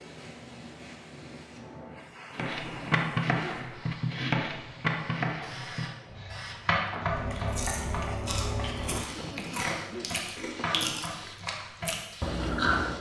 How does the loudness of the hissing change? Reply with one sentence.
The volume of the hissing goes up, then down.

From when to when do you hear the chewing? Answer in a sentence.
You can hear the chewing from 7.2 to 12.9 s.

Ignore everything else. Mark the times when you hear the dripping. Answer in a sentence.
You can't hear the dripping here.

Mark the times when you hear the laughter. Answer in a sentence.
You can hear the laughter from 2.4 to 3.6 s and from 8.8 to 11.1 s.